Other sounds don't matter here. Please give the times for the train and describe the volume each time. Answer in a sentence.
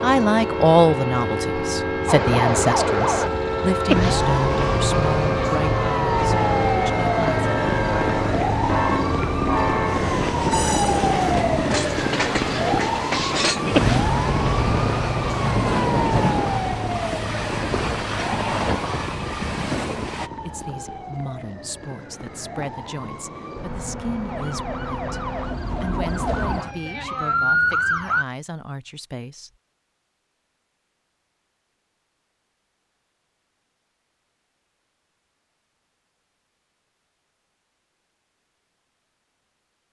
The train can be heard from 0.0 to 20.3 s, at a steady volume.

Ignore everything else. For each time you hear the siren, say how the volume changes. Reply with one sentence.
The siren can be heard from 2.0 to 28.2 s, getting quieter then louder.